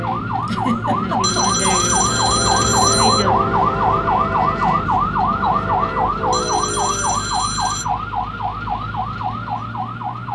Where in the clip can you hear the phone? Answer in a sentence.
You can hear the phone from 1.2 to 3.2 s and from 6.3 to 7.8 s.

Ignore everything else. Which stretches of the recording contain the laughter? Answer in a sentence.
The laughter can be heard from 0.4 to 1.6 s.